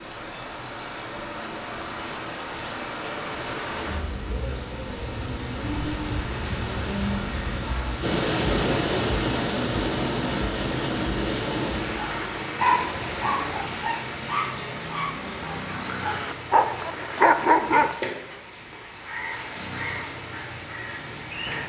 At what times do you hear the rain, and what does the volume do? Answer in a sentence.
The rain can be heard from 0.0 to 21.6 s, getting louder then quieter.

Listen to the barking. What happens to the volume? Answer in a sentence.
The loudness of the barking goes down, then up.